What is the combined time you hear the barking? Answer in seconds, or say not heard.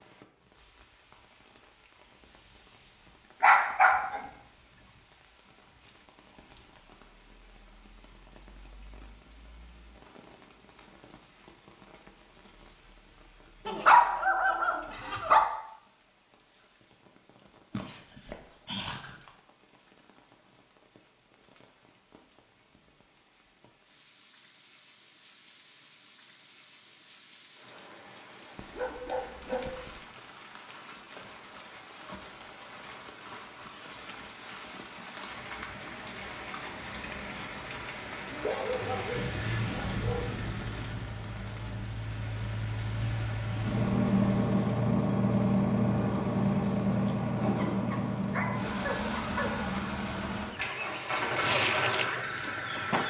10 s.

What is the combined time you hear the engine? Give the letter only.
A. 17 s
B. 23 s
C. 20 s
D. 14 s
D.